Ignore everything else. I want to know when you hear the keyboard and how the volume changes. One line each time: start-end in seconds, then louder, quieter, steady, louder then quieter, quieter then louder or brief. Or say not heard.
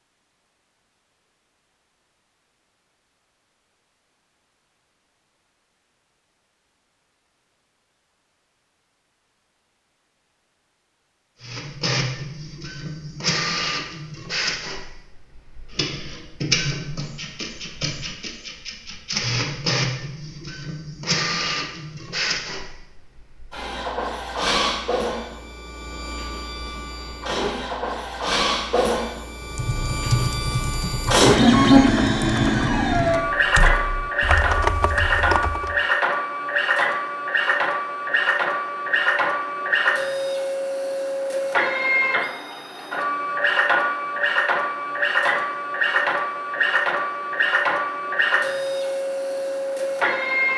29.4-35.8 quieter then louder.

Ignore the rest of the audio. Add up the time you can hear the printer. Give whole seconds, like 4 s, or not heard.
39 s.